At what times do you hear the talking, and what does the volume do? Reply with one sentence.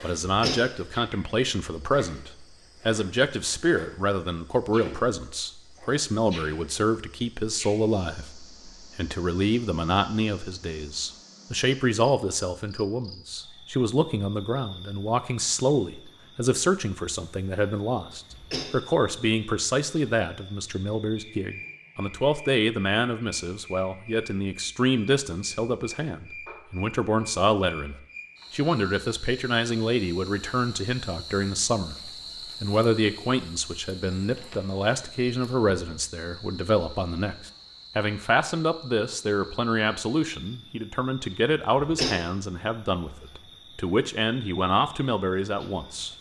You can hear the talking from 0.0 to 46.1 s, at a steady volume.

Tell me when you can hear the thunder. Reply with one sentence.
You can't hear the thunder here.